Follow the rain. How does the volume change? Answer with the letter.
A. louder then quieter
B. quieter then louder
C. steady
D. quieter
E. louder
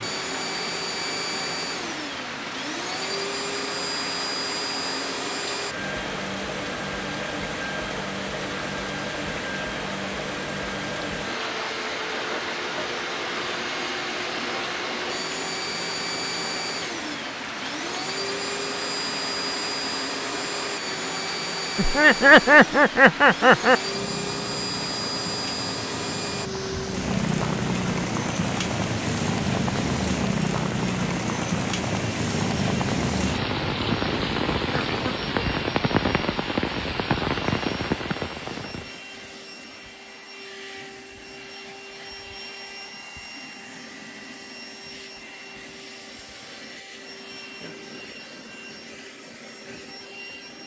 E.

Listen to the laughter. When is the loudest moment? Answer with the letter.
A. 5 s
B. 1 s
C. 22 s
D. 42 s
C.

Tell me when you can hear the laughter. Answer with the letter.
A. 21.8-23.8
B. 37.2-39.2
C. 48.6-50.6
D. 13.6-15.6
A.